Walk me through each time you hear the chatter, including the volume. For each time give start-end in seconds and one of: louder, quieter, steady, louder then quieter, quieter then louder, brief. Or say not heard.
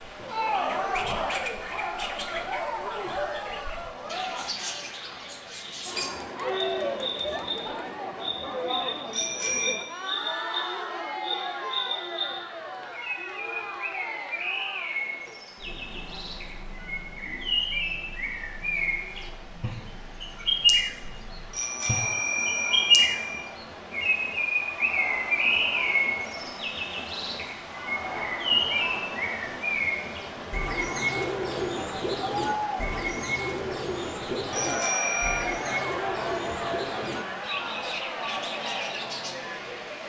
0.0-39.9 quieter then louder.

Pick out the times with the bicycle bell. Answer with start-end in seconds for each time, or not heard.
9.1-9.8, 21.5-23.4, 34.5-35.5.